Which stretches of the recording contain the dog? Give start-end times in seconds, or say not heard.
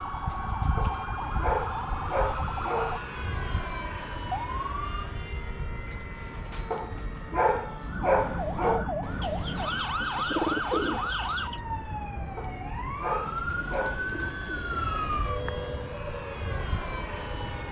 0.8-3.0, 6.7-8.8, 12.3-14.1.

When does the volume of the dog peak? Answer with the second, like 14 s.
8 s.